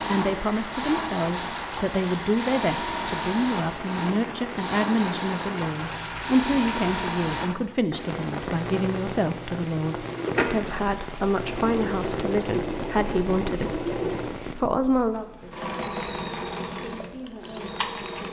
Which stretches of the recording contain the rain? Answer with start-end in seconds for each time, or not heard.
0.0-14.6.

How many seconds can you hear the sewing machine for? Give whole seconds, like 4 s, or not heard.
18 s.